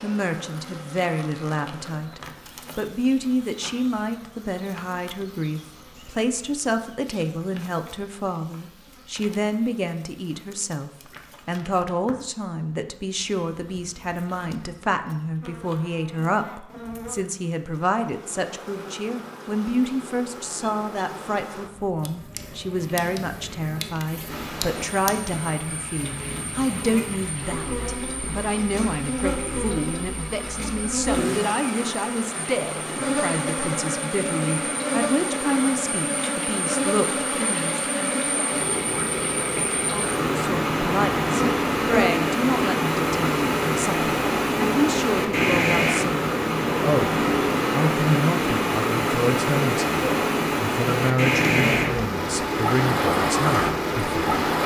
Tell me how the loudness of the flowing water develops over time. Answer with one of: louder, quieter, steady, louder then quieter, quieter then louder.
louder.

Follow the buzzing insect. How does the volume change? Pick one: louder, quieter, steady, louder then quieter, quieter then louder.
louder.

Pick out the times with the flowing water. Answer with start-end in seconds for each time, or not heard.
24.2-54.6.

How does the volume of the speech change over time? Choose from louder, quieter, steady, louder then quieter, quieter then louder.
steady.